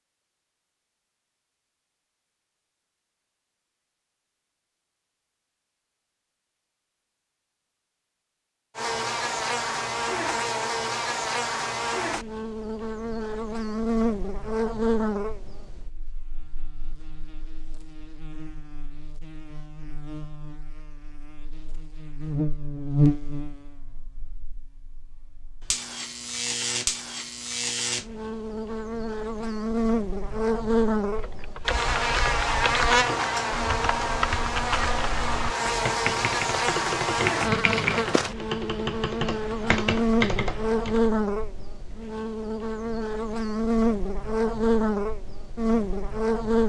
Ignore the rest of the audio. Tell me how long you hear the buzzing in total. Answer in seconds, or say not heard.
38 s.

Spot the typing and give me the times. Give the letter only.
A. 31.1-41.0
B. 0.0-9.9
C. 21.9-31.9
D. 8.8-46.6
A.